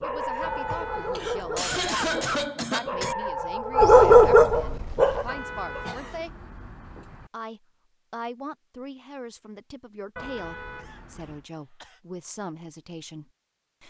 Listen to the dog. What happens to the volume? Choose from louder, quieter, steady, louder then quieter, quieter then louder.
louder.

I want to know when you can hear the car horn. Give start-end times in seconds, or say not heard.
0.4-2.4, 5.2-7.3, 10.2-11.4.